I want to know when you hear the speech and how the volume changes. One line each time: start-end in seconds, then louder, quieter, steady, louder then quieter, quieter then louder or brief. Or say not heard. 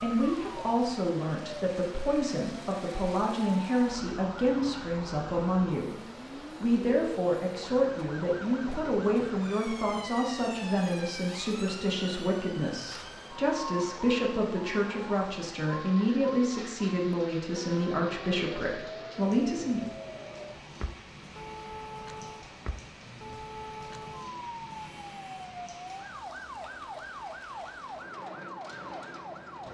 0.0-19.9 steady.